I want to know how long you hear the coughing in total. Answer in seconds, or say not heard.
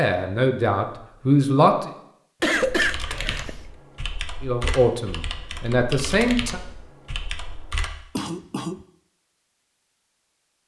2 s.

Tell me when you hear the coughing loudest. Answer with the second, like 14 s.
3 s.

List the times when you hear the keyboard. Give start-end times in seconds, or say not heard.
2.7-8.3.